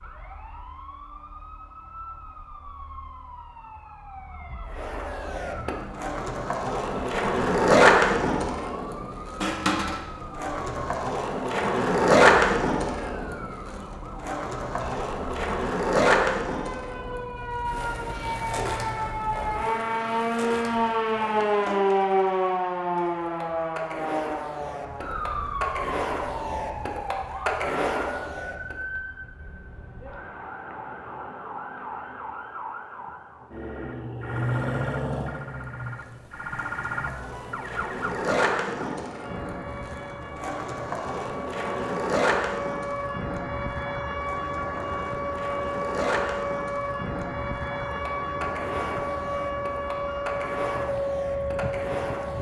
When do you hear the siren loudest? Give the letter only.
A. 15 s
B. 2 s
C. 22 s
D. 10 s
C.